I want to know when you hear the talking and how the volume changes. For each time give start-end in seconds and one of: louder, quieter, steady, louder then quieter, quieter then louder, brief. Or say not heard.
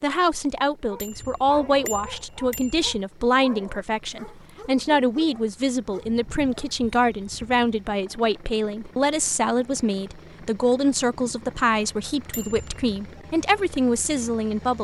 0.0-14.7 steady.